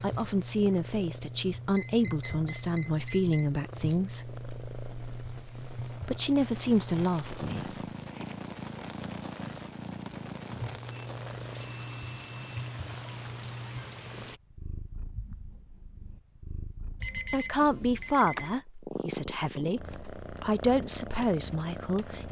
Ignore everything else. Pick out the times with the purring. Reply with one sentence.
You can hear the purring from 0.0 to 22.2 s.